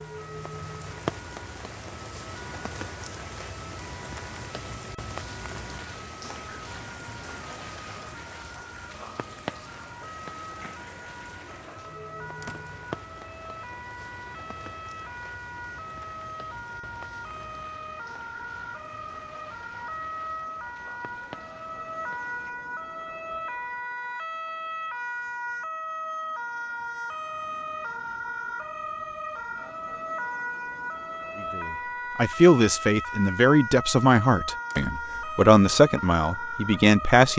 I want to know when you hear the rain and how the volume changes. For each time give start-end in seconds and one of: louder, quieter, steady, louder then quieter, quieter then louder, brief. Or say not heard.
0.0-22.6 quieter.